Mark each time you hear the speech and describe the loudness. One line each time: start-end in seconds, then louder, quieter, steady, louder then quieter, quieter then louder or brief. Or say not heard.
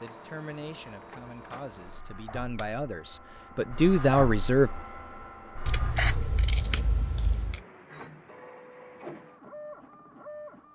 0.0-4.7 louder.